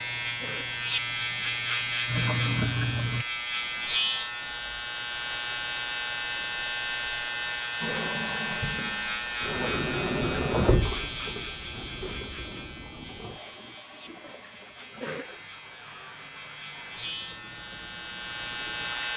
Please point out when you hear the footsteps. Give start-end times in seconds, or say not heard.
not heard.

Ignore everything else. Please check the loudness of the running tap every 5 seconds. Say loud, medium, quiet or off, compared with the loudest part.
loud, loud, loud, quiet.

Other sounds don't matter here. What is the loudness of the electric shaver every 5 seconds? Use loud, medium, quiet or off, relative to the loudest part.
loud, loud, medium, medium.